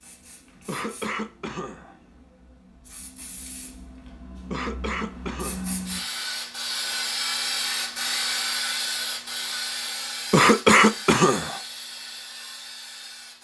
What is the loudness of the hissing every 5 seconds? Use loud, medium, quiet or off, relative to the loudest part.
quiet, loud, medium.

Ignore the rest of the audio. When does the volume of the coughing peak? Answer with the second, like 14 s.
11 s.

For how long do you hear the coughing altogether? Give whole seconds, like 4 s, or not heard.
4 s.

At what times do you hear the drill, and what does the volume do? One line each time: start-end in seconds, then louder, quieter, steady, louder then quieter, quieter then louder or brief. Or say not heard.
not heard.